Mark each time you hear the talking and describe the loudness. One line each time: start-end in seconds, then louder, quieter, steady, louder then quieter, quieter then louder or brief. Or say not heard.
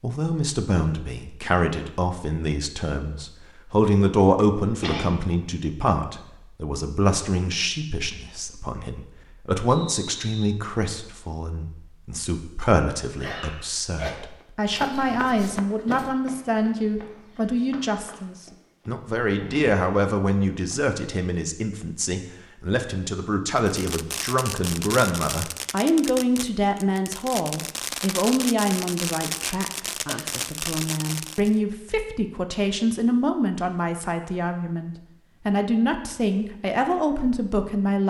0.0-38.0 steady.